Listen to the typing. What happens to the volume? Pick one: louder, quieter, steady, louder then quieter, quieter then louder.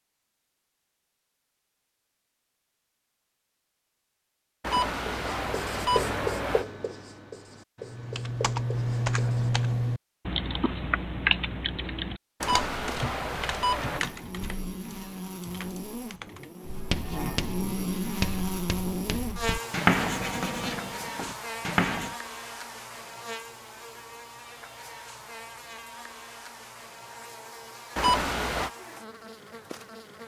quieter.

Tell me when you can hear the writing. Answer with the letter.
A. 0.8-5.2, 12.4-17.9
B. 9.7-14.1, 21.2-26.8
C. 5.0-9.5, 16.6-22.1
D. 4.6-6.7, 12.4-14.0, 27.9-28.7
C.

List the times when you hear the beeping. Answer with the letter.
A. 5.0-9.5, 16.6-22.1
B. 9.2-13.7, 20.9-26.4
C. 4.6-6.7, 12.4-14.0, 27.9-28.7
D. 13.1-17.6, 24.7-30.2
C.